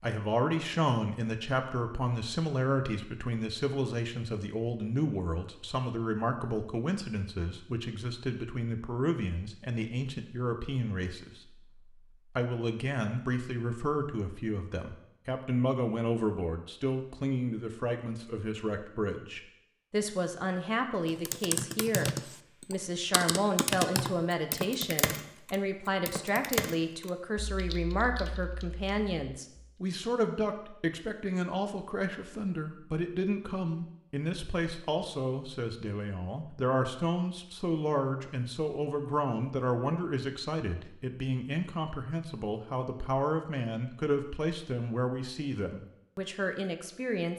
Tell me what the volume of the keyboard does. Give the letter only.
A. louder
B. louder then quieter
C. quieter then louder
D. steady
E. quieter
E.